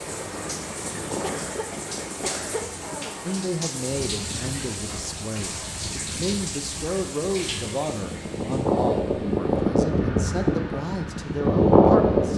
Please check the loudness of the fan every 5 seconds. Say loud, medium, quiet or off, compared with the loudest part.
quiet, medium, loud.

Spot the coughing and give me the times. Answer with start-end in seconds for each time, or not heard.
1.2-3.2.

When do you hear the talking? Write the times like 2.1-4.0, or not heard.
3.2-12.3.